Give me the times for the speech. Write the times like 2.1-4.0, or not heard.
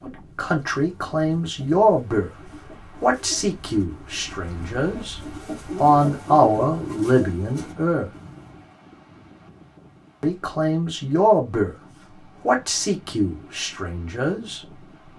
0.0-2.3, 3.0-8.1, 10.2-11.8, 12.4-15.1.